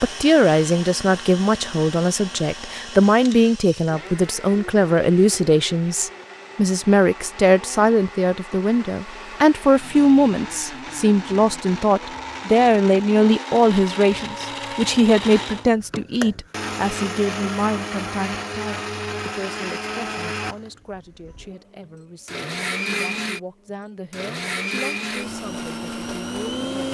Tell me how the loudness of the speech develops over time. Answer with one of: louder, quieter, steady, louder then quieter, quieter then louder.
quieter.